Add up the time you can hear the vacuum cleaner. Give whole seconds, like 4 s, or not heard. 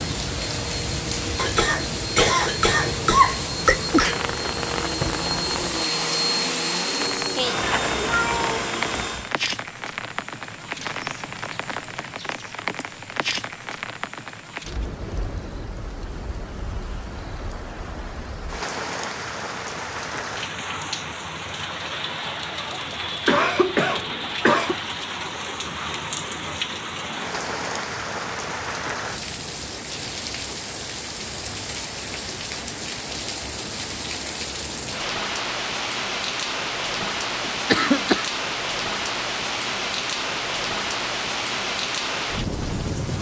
9 s.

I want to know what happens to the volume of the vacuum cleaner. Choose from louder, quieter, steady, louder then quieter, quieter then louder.
louder.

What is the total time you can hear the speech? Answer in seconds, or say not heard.
not heard.